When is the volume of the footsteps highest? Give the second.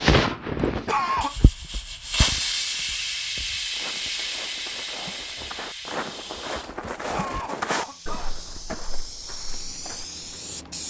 8 s.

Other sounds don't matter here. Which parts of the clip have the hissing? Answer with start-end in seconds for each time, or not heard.
0.0-10.8.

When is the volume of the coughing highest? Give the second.
1 s.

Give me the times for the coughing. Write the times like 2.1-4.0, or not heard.
0.7-1.4, 6.8-8.8.